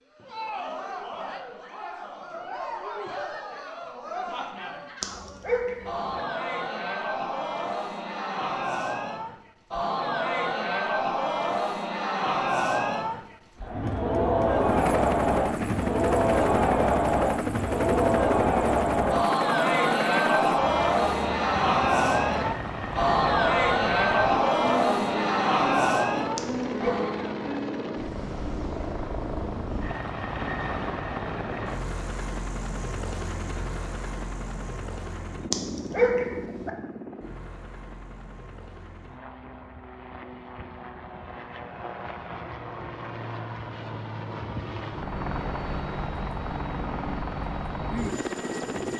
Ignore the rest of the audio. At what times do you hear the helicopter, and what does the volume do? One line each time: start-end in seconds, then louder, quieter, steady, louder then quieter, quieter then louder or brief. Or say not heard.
14.6-48.9 quieter then louder.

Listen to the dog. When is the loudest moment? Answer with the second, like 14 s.
36 s.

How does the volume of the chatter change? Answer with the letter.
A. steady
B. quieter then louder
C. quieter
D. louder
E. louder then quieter
D.